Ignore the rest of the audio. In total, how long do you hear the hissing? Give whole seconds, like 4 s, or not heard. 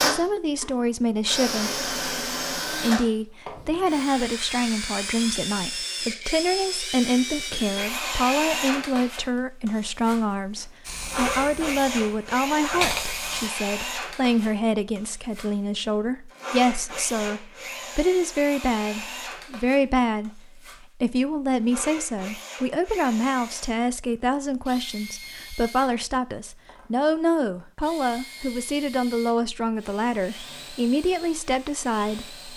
3 s.